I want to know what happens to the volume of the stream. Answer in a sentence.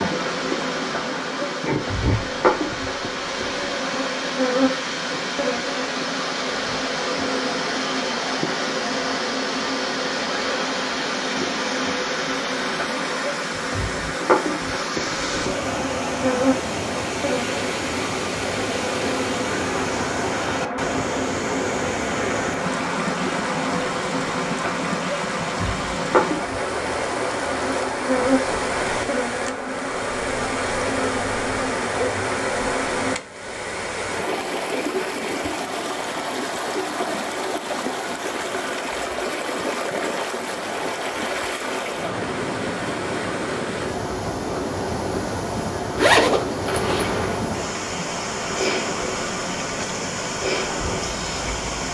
The loudness of the stream stays about the same.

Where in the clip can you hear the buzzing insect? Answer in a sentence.
You can hear the buzzing insect from 0.0 to 33.2 s and from 46.6 to 51.9 s.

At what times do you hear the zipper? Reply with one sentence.
The zipper can be heard from 46.0 to 47.1 s.